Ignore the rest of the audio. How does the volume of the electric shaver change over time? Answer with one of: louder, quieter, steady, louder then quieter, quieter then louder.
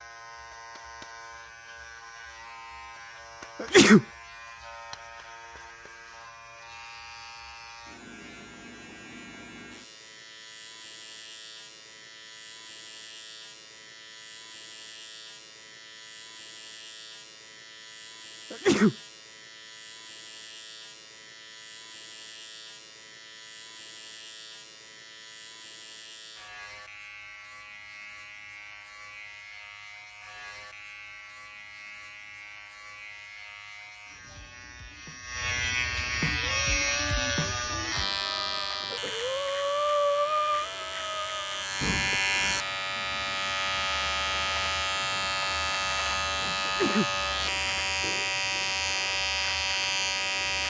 louder.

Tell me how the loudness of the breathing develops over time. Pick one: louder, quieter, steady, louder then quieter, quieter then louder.
louder then quieter.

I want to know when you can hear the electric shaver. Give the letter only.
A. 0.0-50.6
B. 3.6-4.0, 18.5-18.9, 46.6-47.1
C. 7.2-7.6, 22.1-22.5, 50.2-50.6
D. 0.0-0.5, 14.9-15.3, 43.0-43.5
A.